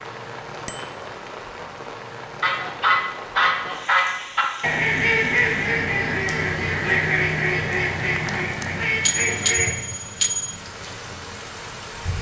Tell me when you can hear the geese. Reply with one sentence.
The geese can be heard from 2.4 to 9.8 s.